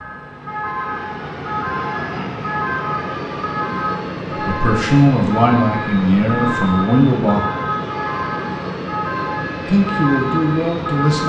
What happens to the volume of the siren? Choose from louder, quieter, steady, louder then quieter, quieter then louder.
steady.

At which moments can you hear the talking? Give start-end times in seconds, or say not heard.
4.5-7.5, 9.7-11.2.